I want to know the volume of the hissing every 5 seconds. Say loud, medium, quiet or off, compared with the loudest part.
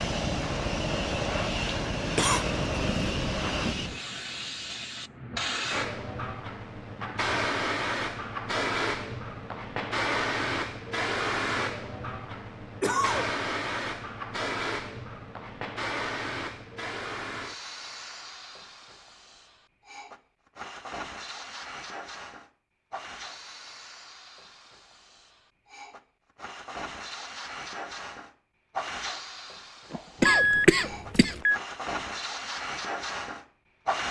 loud, loud, loud, medium, medium, medium, loud.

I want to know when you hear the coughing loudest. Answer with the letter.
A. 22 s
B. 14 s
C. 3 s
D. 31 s
D.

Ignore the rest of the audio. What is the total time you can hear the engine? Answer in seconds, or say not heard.
4 s.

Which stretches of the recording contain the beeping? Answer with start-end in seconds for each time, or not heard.
29.9-31.6.